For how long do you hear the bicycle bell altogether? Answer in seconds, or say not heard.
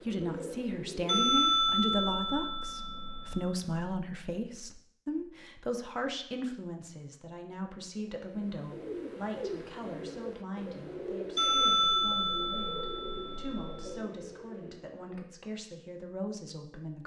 5 s.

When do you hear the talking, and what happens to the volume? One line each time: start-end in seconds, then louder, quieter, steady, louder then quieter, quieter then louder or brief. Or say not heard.
0.1-17.0 quieter.